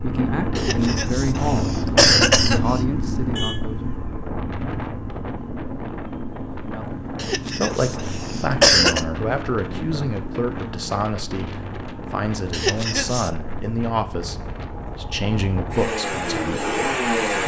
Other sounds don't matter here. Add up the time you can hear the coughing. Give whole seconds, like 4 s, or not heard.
5 s.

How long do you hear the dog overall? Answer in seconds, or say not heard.
not heard.